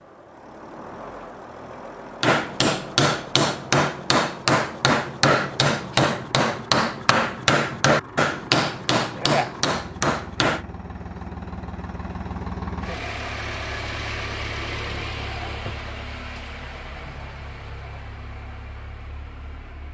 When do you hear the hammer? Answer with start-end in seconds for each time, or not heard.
2.2-10.7.